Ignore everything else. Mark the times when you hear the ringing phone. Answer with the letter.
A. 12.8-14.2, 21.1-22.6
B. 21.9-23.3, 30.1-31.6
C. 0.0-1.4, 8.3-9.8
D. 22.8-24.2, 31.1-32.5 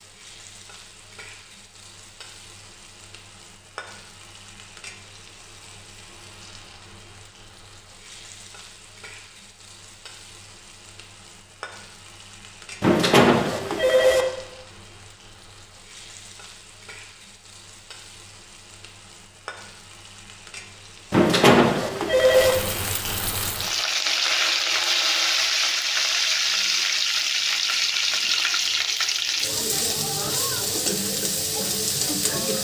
A.